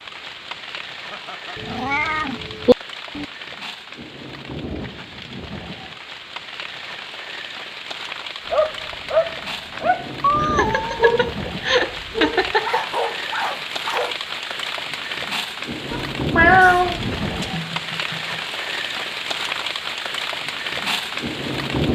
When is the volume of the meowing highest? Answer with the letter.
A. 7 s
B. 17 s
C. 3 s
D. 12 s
B.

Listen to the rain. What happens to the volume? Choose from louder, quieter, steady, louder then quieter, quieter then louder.
louder.